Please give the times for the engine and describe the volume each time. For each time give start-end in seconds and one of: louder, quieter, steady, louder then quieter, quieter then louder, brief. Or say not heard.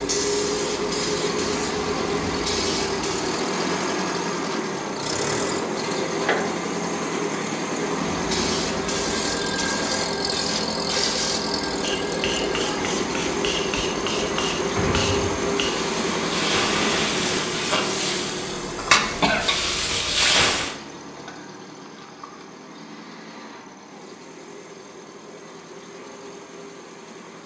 0.0-27.4 quieter.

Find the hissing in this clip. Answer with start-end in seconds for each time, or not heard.
0.0-3.3, 8.1-20.8.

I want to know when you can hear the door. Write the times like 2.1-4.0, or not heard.
14.8-15.4.